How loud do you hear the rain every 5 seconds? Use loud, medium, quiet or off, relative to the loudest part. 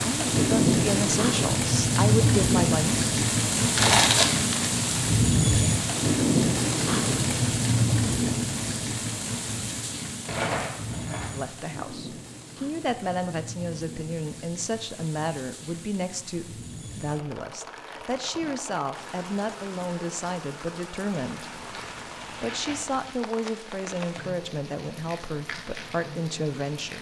loud, loud, quiet, quiet, quiet, quiet.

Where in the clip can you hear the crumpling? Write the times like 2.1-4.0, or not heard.
3.8-4.7, 10.2-11.3, 21.4-23.1.